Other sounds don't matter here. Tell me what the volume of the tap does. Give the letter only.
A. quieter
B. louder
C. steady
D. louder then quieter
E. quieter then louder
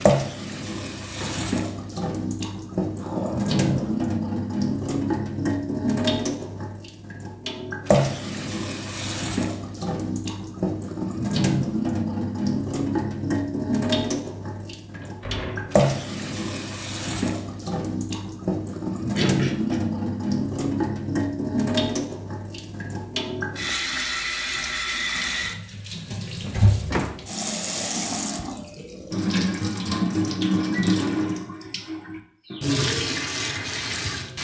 C.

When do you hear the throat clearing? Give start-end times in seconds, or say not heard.
3.0-4.1, 19.1-19.8.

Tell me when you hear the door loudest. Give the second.
27 s.